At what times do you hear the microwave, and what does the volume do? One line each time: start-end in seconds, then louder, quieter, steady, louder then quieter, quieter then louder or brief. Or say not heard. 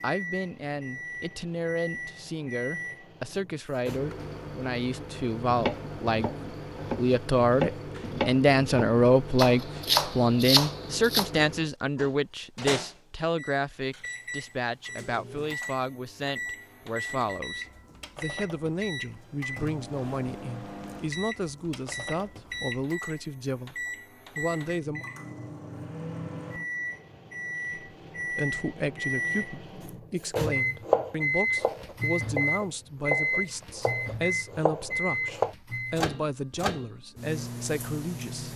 0.0-38.5 louder.